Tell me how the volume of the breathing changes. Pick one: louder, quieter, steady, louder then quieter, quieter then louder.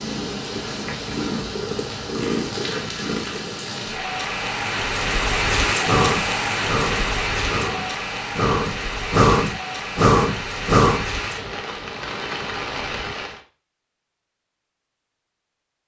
louder.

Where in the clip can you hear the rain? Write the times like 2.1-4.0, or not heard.
0.0-13.4.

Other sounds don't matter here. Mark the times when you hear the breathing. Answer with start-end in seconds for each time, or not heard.
5.8-11.1.